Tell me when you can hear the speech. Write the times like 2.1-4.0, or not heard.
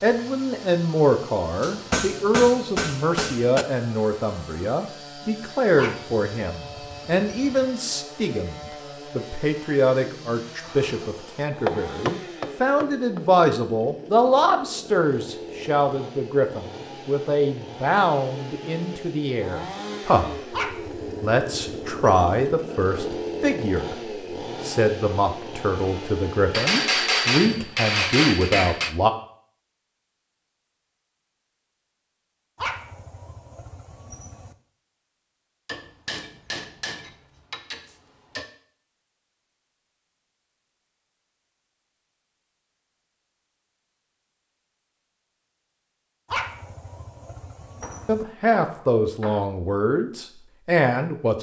0.0-20.6, 21.2-29.1, 48.0-51.3.